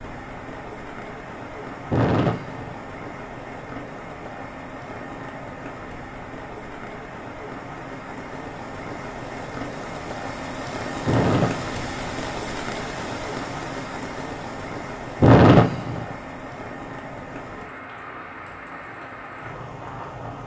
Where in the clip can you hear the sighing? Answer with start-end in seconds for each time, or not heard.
1.9-2.8, 11.1-11.8, 15.2-16.1.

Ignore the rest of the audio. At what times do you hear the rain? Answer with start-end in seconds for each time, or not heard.
0.0-20.4.